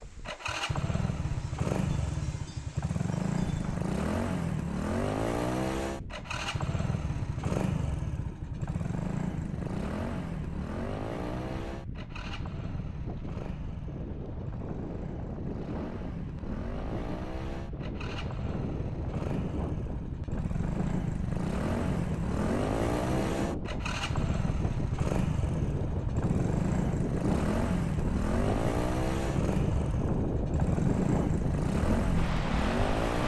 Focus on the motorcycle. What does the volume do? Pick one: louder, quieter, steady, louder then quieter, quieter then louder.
quieter then louder.